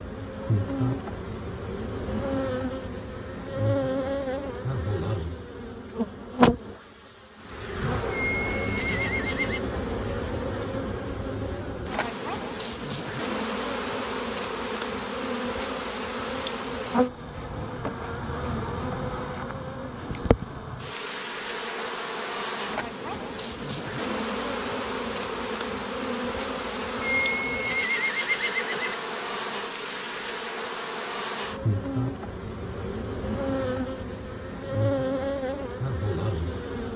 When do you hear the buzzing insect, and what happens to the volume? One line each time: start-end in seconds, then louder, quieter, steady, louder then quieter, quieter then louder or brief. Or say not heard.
0.0-36.9 steady.